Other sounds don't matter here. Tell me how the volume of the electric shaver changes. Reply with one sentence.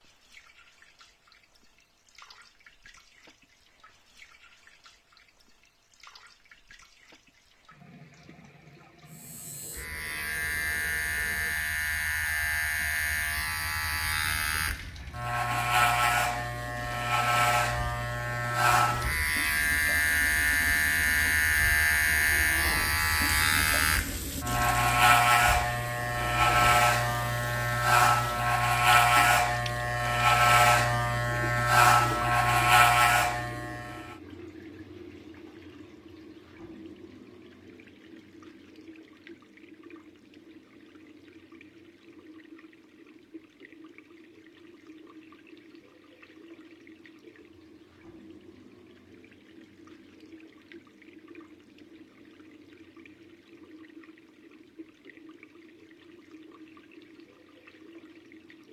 The loudness of the electric shaver goes up.